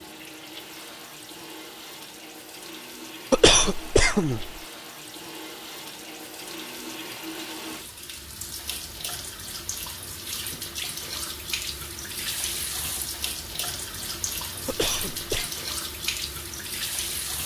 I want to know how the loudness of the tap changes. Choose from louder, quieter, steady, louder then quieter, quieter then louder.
louder.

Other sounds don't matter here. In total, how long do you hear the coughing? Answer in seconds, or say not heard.
2 s.